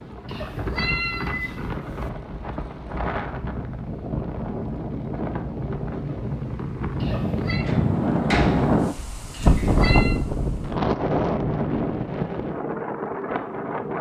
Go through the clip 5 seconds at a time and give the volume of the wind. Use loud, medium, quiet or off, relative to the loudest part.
medium, loud, loud.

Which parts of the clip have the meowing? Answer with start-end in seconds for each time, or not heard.
0.2-2.1, 7.0-7.7, 9.3-10.2.